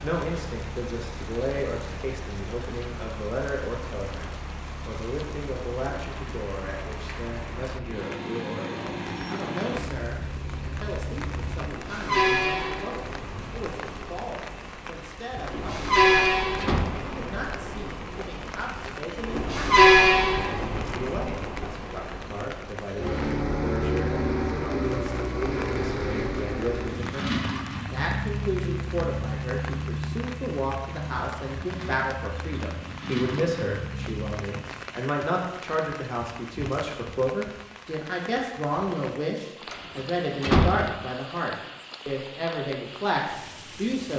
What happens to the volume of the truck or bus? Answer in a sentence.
The loudness of the truck or bus goes up, then down.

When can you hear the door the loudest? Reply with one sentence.
The volume of the door peaks at 41 seconds.